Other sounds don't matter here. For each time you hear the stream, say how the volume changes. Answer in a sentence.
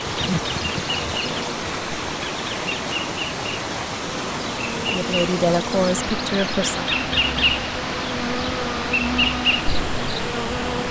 You can hear the stream from 0.0 to 10.8 s, at a steady volume.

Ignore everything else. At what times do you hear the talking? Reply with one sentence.
You can hear the talking from 4.8 to 6.9 s.